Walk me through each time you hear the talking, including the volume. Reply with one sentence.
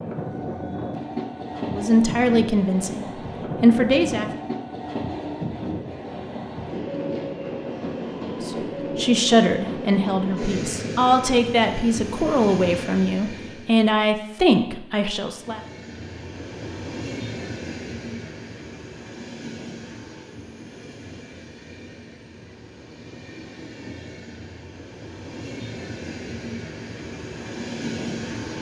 The talking can be heard briefly from 1.6 to 4.3 s; and from 8.4 to 15.6 s, at a steady volume.